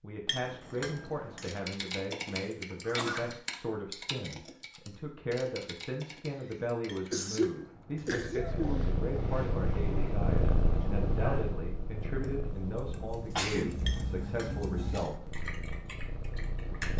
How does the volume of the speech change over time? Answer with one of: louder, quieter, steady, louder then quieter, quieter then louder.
steady.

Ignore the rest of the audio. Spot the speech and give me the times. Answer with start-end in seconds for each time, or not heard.
0.0-15.2.